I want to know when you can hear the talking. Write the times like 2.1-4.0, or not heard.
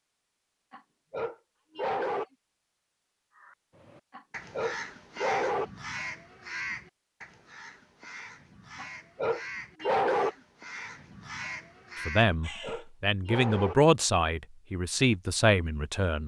12.1-16.2.